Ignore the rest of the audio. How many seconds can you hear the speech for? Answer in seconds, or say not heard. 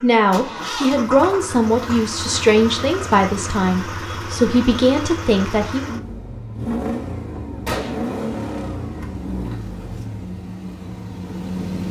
6 s.